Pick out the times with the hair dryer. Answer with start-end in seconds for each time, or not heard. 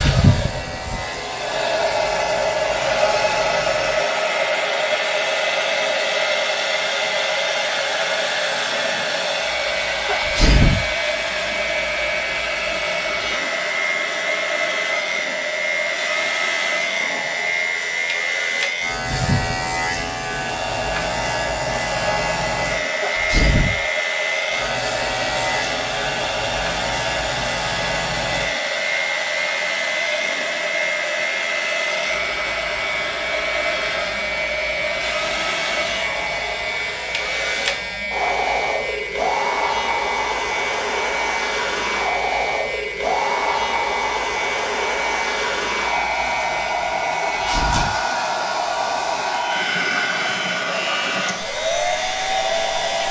0.0-53.0.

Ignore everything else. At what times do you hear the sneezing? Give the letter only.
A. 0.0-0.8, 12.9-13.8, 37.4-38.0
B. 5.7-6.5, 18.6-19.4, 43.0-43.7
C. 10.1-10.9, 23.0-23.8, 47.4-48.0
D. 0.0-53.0
C.